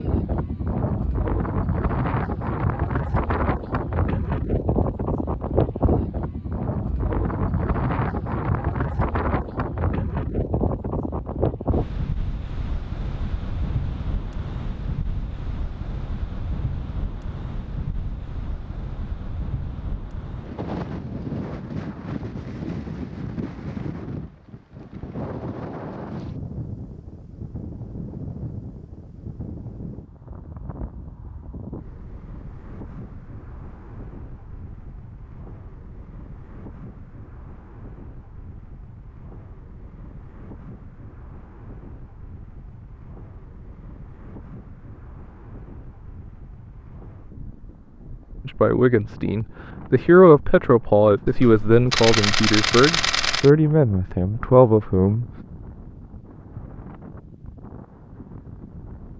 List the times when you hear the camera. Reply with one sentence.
The camera can be heard from 51.2 to 53.5 s.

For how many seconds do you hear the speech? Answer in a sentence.
The speech can be heard for 7 seconds in total.